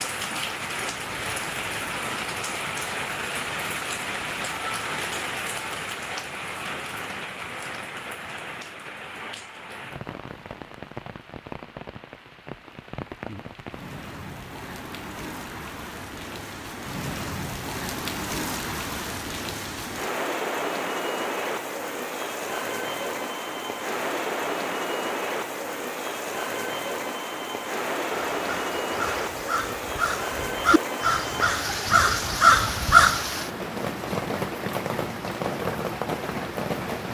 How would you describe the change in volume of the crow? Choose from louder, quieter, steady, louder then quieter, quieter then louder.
louder.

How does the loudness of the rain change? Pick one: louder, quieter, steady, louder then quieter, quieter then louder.
quieter then louder.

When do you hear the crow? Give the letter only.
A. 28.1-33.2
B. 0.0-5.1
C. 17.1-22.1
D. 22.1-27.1
A.